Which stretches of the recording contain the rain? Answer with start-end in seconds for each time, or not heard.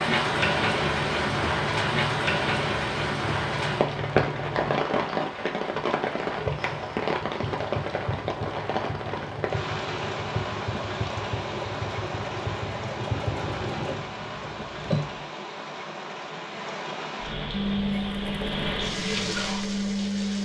0.0-20.3.